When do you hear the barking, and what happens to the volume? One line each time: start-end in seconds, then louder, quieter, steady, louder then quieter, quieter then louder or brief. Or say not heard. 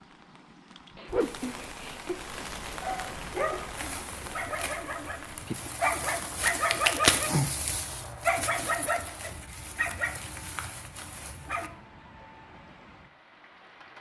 2.8-11.7 louder then quieter.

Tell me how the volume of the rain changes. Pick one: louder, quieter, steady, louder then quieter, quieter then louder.
quieter.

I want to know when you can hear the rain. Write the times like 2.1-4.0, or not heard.
0.0-13.9.